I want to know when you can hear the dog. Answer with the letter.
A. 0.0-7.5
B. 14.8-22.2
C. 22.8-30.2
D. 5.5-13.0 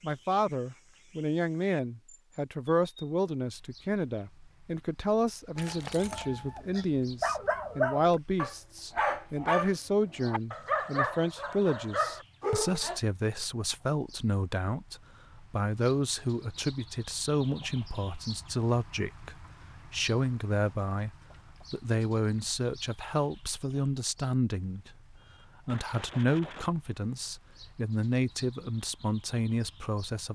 D.